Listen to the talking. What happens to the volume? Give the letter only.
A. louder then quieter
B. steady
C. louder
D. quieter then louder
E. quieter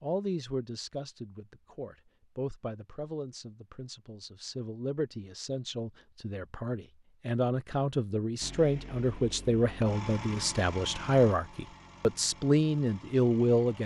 C.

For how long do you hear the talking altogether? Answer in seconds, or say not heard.
14 s.